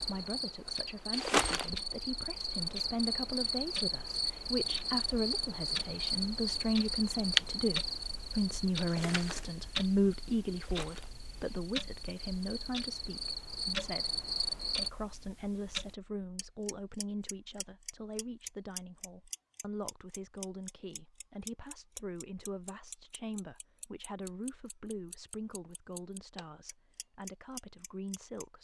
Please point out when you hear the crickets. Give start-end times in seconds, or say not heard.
0.0-14.9.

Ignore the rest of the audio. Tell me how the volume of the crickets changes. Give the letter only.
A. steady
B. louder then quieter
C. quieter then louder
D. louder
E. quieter
C.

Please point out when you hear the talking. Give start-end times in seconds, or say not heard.
0.0-28.5.